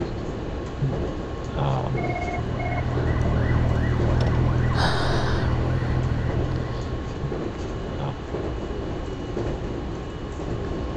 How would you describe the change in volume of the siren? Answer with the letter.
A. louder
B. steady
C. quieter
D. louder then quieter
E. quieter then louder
B.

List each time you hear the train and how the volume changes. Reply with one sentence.
The train can be heard from 0.0 to 10.9 s, at a steady volume.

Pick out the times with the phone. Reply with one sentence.
You can hear the phone from 0.8 to 2.9 s and from 7.2 to 8.2 s.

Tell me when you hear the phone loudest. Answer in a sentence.
The volume of the phone peaks at 2 seconds.